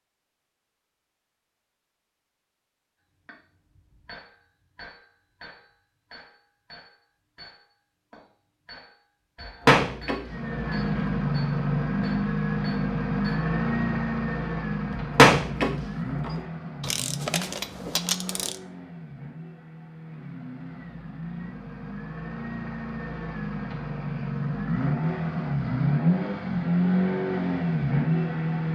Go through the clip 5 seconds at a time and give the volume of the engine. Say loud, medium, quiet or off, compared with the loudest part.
off, off, loud, medium, medium, loud.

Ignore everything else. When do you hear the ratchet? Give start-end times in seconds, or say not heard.
16.8-18.6.